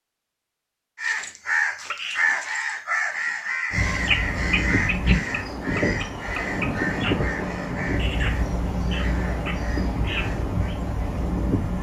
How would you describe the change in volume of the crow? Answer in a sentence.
The volume of the crow goes down.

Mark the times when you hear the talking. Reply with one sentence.
The talking can't be heard in this clip.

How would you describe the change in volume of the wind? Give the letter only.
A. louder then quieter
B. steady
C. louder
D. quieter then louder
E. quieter
B.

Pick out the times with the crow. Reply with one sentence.
The crow can be heard from 0.9 to 10.8 s.